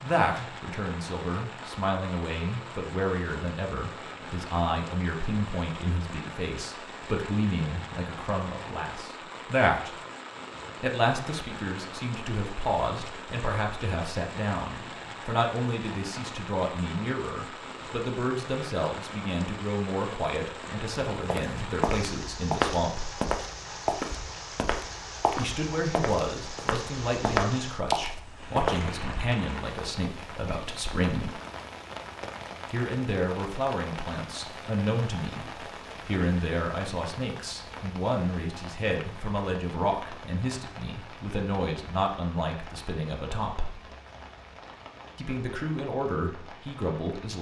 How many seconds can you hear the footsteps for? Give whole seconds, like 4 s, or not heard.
8 s.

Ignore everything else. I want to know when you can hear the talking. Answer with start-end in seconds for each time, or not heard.
0.0-9.9, 10.8-23.1, 25.4-31.4, 32.7-43.8, 45.1-47.3.